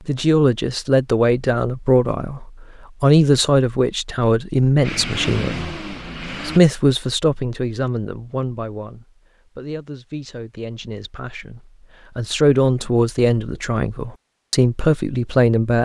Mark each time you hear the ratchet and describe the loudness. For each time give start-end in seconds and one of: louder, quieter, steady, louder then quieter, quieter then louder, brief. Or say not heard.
not heard.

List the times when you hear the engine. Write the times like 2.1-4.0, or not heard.
4.8-6.6.